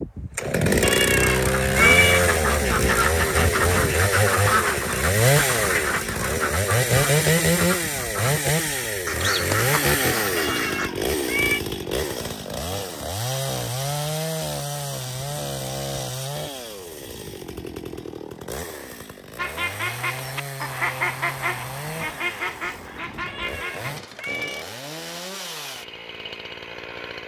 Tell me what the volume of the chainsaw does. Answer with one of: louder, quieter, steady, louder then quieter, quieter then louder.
quieter.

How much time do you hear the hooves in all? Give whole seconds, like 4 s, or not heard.
not heard.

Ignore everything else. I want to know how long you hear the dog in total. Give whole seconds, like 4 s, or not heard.
not heard.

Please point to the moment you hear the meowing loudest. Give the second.
2 s.